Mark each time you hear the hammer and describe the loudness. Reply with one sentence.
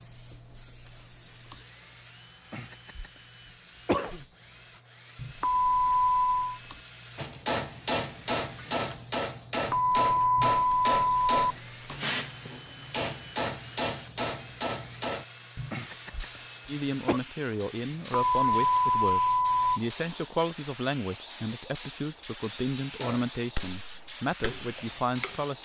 The hammer can be heard from 7.2 to 15.2 s, at a steady volume; and briefly from 22.9 to 25.4 s.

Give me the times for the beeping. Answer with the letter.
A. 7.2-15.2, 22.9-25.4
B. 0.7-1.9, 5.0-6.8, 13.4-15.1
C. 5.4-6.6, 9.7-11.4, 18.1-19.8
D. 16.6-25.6
C.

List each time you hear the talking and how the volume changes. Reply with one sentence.
You can hear the talking from 16.6 to 25.6 s, at a steady volume.